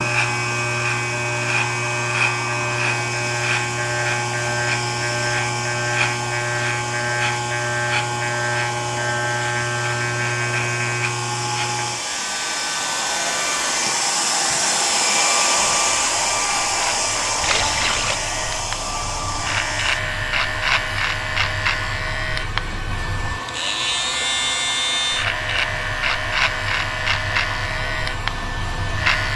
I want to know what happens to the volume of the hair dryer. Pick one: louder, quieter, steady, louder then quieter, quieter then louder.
louder then quieter.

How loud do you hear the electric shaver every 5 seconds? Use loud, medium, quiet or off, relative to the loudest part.
loud, loud, loud, medium, loud, loud.